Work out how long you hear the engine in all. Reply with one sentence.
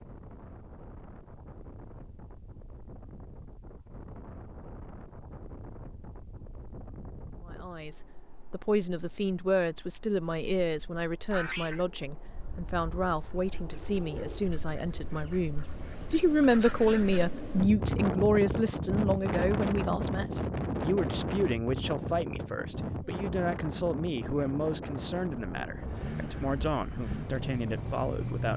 You can hear the engine for 3 seconds altogether.